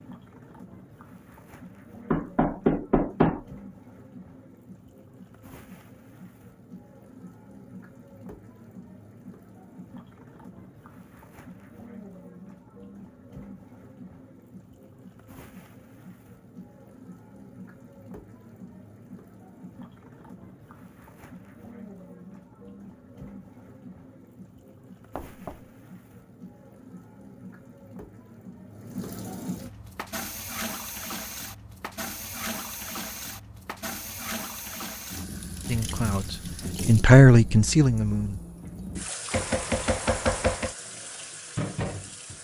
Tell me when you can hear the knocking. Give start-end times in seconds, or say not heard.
2.1-3.4, 25.1-25.6, 39.3-40.8.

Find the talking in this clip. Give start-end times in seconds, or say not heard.
35.6-38.4.